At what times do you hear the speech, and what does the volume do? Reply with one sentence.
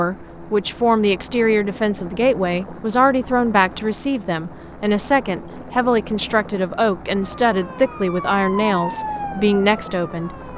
The speech can be heard from 0.0 to 10.3 s, at a steady volume.